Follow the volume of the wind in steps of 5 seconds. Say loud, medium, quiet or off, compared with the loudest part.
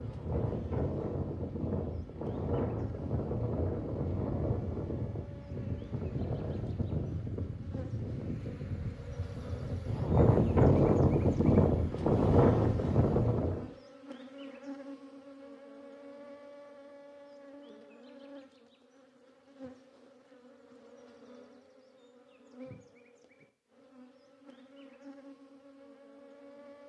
medium, quiet, loud, off, off, off.